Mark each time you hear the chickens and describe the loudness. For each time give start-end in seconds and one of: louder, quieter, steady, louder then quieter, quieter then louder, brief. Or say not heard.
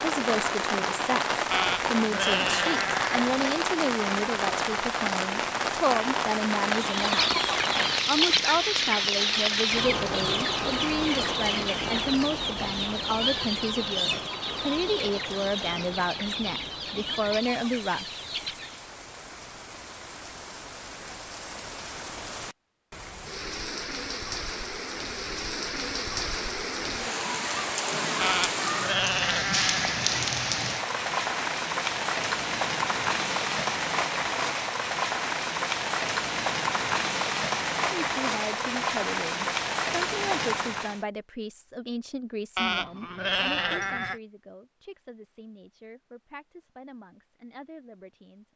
6.7-18.9 quieter.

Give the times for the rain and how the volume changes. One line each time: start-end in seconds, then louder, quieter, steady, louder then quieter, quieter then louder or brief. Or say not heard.
0.0-41.0 quieter then louder.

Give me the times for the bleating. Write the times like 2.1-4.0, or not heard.
1.5-3.5, 28.2-30.1, 42.5-44.2.